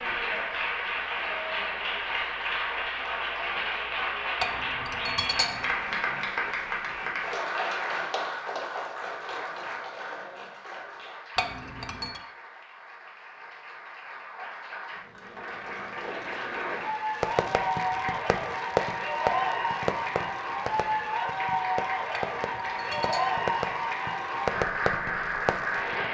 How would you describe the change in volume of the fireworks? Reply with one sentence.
The volume of the fireworks goes down, then up.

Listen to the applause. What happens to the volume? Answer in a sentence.
The loudness of the applause goes down, then up.